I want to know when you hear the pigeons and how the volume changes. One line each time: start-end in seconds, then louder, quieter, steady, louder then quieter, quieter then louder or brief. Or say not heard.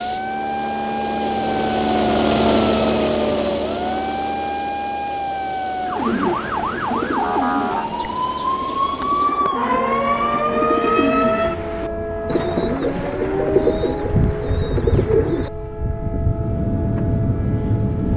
5.8-15.5 quieter then louder.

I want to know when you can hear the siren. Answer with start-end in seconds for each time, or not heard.
0.0-18.1.